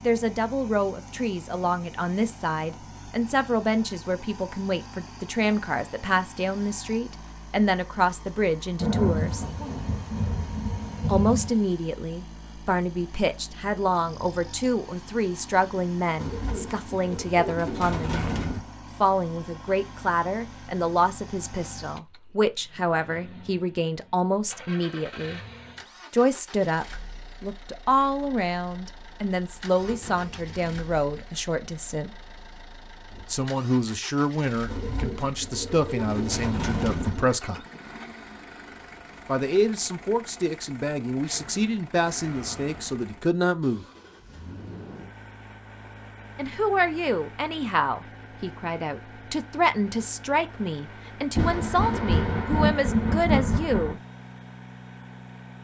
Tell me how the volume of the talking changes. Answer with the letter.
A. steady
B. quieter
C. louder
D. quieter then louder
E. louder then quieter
A.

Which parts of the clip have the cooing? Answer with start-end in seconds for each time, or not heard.
16.1-18.6, 34.6-37.4.